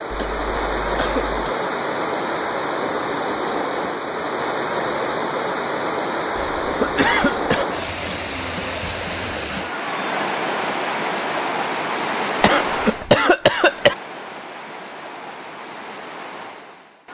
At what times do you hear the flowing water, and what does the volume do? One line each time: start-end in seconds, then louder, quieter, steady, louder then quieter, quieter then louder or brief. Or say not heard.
0.0-17.0 quieter.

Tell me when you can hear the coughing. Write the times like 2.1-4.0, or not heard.
0.1-1.5, 6.6-7.7, 12.4-13.9.